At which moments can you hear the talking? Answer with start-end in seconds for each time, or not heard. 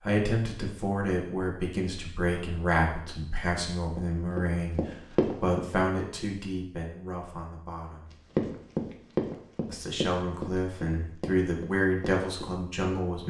0.0-8.1, 9.7-13.2.